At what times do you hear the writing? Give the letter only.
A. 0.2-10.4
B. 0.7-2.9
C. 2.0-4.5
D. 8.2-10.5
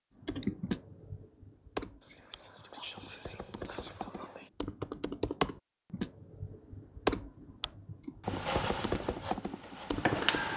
D.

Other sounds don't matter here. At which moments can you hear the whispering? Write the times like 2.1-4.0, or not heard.
2.0-4.5.